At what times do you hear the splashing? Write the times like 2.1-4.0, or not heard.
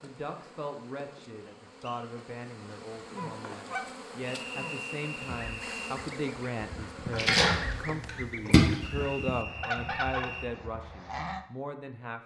7.1-8.8.